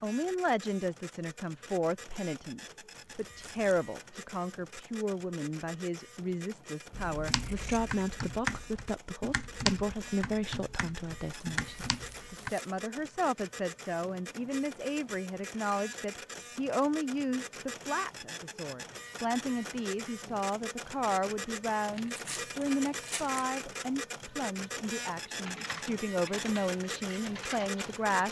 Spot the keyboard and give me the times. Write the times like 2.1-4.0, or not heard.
7.2-12.5, 25.4-28.1.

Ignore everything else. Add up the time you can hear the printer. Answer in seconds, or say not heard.
28 s.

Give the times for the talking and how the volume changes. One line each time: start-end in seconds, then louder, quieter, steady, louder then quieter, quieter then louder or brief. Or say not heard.
0.0-28.2 steady.